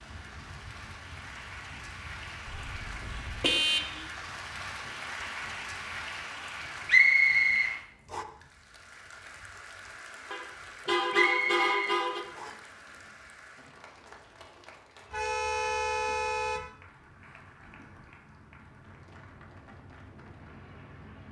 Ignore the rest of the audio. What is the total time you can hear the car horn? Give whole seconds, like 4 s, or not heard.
5 s.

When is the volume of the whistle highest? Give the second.
7 s.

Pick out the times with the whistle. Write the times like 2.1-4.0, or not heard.
6.8-8.2, 11.1-12.6.